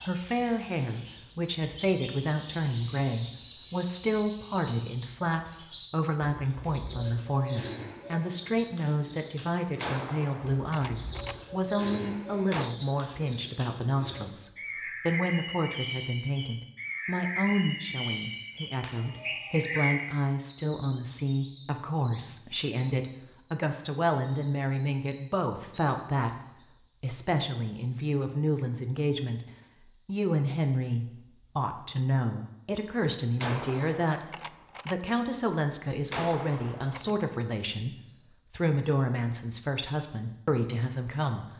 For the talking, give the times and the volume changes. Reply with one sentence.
You can hear the talking from 0.0 to 41.5 s, at a steady volume.